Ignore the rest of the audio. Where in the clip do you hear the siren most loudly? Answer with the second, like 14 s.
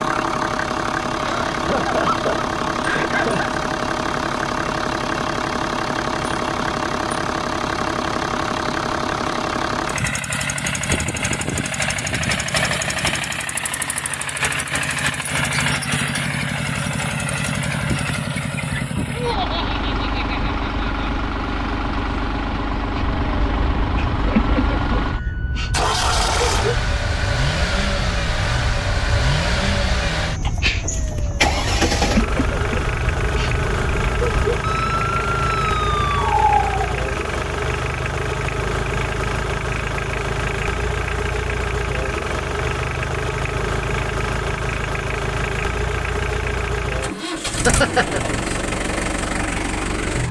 36 s.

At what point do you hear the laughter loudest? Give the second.
48 s.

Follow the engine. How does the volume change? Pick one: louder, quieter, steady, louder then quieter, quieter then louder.
steady.